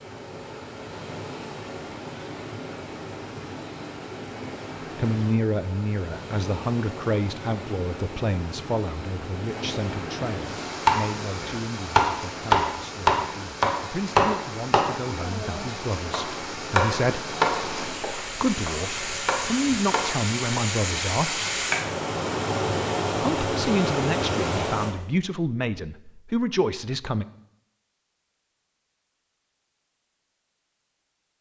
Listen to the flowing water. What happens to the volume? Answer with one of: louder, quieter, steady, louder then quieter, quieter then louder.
louder.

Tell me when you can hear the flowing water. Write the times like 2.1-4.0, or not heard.
0.0-24.9.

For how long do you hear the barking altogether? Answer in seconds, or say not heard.
not heard.